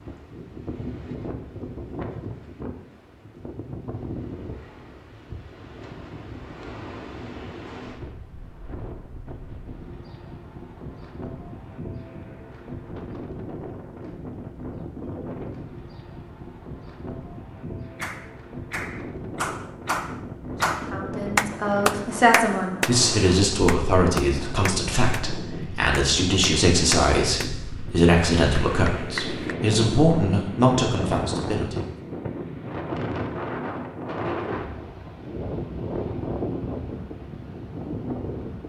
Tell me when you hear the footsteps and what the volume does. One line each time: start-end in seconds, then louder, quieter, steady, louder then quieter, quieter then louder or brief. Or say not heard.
not heard.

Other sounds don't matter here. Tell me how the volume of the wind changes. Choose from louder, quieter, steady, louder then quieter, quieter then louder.
louder.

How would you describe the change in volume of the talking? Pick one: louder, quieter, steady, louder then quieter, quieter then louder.
steady.